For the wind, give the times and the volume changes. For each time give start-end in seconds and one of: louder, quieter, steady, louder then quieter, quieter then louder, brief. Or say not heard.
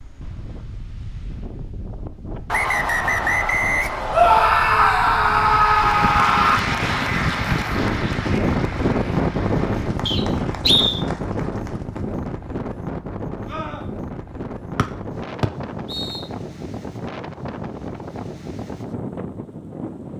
0.0-20.1 louder then quieter.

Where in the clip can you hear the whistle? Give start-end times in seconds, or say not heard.
2.5-4.5, 10.1-11.0, 14.8-16.2.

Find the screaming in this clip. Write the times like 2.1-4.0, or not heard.
4.1-6.6, 13.4-13.8.